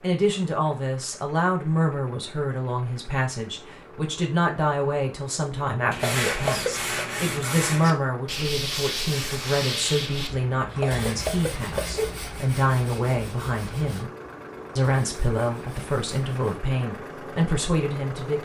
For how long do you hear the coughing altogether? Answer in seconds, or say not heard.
2 s.